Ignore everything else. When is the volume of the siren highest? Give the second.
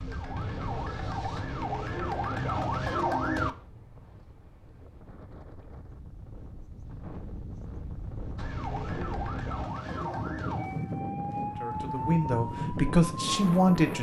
3 s.